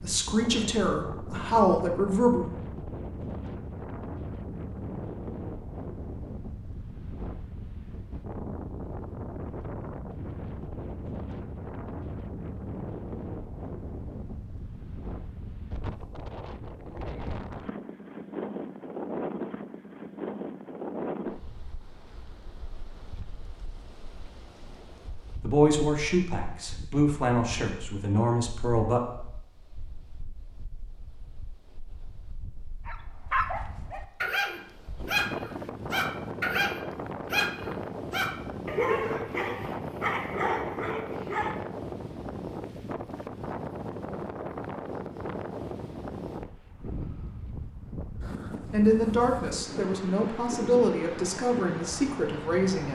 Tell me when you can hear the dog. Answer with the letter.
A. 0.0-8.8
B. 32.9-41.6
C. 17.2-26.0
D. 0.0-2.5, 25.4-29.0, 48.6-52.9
B.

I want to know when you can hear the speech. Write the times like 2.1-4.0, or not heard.
0.0-2.5, 25.4-29.0, 48.6-52.9.